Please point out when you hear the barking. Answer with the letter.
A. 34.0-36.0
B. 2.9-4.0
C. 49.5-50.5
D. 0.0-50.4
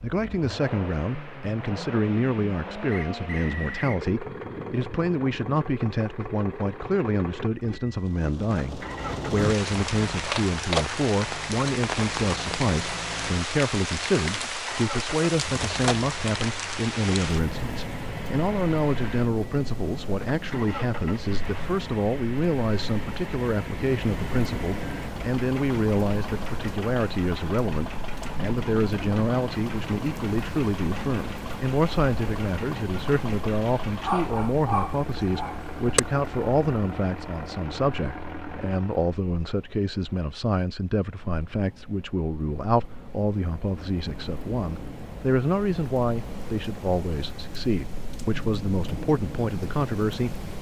A.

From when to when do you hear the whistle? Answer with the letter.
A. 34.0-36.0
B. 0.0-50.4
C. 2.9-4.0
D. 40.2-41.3
C.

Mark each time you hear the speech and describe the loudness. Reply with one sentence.
The speech can be heard from 0.0 to 50.4 s, at a steady volume.